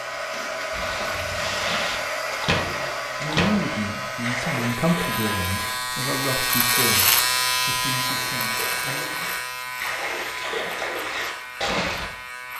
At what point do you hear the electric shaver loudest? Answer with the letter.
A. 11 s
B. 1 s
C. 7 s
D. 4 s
C.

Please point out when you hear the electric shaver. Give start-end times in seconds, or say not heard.
0.0-12.5.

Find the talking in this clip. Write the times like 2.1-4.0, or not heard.
3.2-9.3.